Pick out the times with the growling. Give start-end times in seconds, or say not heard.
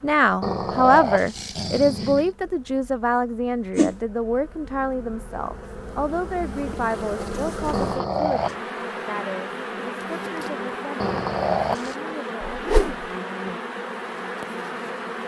0.4-2.3, 7.7-8.6, 10.9-11.9.